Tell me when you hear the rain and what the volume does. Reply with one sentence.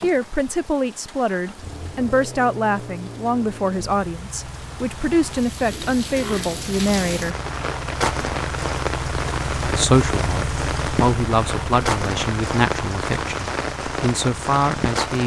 The rain can be heard from 0.0 to 15.2 s, getting louder.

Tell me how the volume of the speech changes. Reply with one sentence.
The volume of the speech stays about the same.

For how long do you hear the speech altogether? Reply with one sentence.
The speech can be heard for 13 seconds in total.